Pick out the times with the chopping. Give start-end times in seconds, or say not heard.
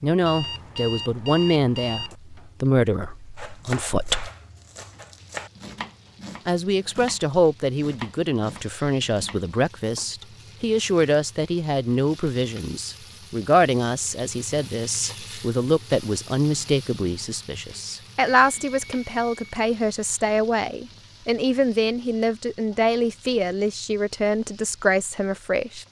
3.4-10.1.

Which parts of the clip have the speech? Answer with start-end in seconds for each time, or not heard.
0.0-4.3, 6.5-25.8.